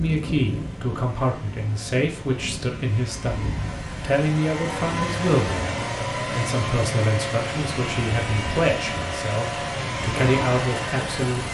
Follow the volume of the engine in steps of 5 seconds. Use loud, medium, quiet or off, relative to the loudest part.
medium, loud, loud.